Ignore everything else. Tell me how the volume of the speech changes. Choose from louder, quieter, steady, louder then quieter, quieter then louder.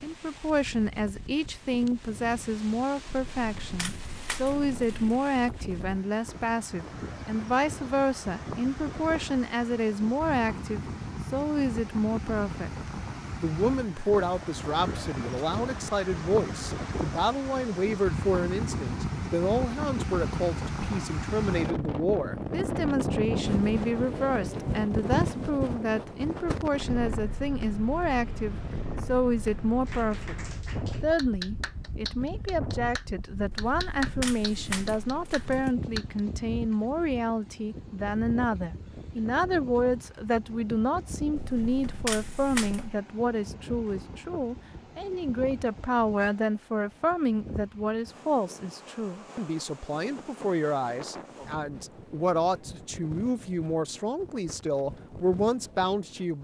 steady.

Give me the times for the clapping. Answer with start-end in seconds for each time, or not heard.
29.9-36.2.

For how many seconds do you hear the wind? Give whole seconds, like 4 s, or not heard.
56 s.